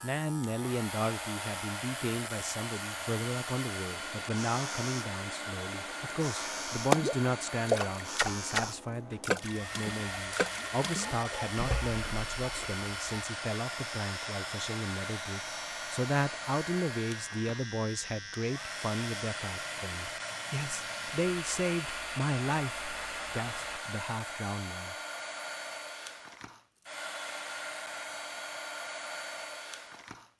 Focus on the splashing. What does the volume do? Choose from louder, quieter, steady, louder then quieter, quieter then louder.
quieter.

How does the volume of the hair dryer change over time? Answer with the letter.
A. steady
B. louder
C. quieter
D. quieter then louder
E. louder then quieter
A.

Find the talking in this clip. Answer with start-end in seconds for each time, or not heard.
0.0-24.9.